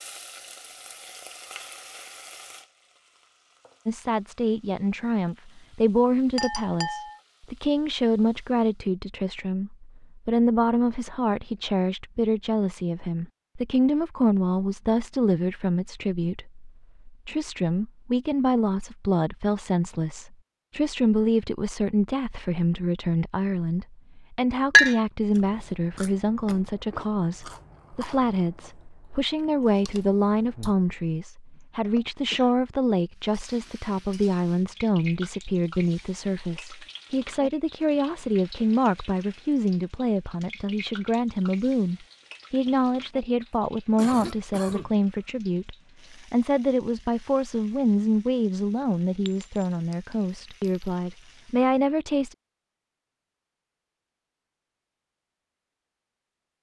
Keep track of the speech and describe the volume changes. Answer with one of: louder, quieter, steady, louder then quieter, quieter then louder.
steady.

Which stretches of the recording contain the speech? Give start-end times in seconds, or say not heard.
3.9-52.4.